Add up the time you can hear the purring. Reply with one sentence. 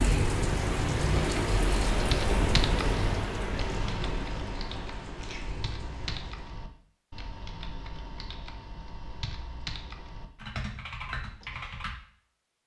The purring can't be heard in this clip.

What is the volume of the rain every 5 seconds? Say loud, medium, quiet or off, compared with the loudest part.
loud, quiet, off.